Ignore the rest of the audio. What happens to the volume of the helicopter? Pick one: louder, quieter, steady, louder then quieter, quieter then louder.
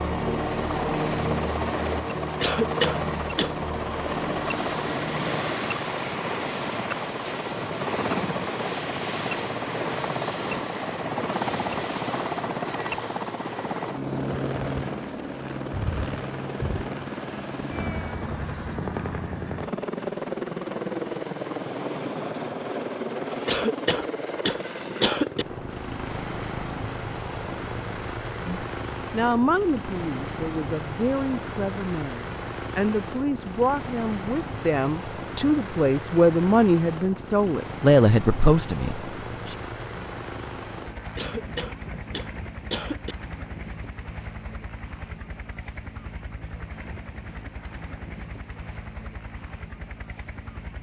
quieter.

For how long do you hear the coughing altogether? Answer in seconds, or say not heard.
5 s.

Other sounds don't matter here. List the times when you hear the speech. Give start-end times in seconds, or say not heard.
28.4-39.5.